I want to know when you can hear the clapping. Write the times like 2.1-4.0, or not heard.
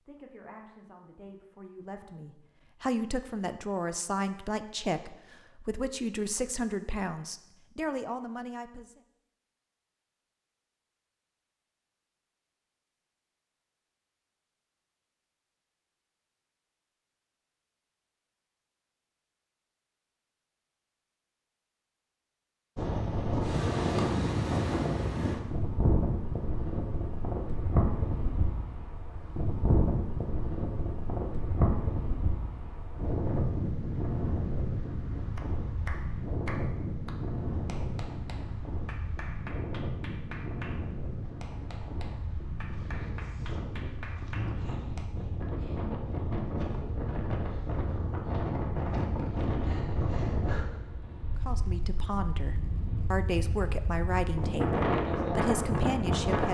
35.4-45.1.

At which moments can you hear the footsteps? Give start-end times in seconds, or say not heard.
not heard.